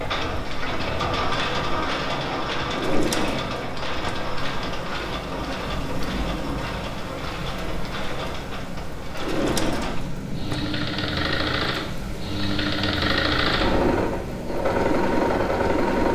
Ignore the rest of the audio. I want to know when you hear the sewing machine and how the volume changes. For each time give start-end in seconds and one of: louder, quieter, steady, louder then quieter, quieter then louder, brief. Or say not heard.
0.0-16.0 quieter then louder.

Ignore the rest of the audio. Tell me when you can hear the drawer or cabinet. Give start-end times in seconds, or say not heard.
2.7-4.2, 9.2-10.7.